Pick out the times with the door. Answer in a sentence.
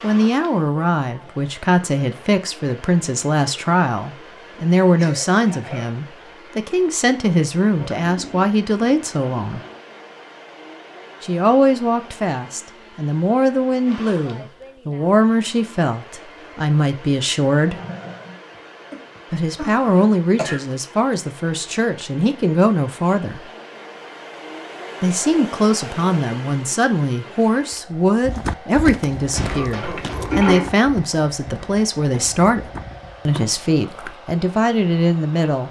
The door can't be heard in this clip.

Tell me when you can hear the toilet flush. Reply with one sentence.
You can hear the toilet flush from 7.8 to 9.8 s, from 17.6 to 18.4 s and from 29.8 to 30.6 s.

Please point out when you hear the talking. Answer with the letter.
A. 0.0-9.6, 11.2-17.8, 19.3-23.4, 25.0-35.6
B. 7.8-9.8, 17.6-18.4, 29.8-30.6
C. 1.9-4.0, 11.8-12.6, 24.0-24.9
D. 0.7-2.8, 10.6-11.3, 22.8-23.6
A.